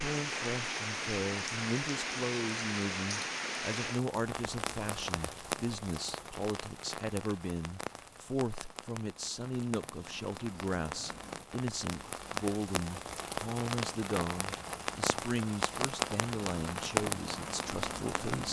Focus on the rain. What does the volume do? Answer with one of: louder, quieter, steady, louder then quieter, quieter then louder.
quieter then louder.